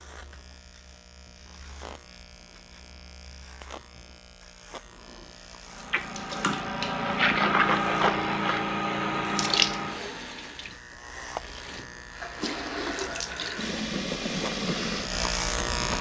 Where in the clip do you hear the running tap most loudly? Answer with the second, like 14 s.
8 s.